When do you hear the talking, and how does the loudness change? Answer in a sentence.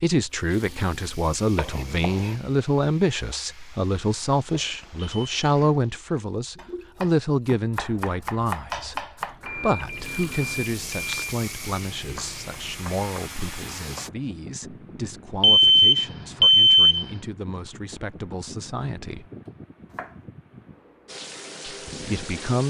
You can hear the talking from 0.0 to 19.3 s, getting quieter; and briefly from 21.9 to 22.6 s.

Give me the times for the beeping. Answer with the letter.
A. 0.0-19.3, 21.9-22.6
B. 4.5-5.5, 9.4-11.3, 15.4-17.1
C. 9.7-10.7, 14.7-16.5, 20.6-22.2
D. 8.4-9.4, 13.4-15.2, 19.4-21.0
B.